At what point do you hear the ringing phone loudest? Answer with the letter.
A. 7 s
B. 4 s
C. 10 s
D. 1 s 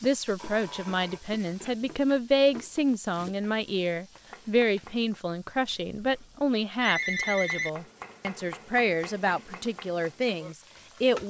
A.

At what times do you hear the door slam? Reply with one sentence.
The door slam can't be heard in this clip.